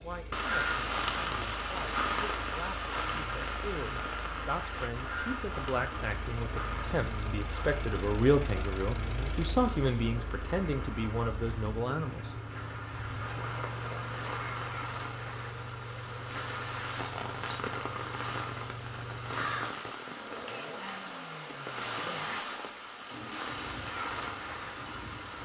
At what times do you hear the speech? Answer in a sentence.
You can hear the speech from 0.0 to 12.3 s.